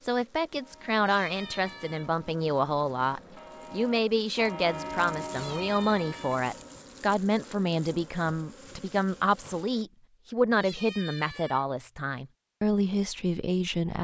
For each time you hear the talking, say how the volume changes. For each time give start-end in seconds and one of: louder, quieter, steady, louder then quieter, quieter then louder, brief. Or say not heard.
0.0-13.9 steady.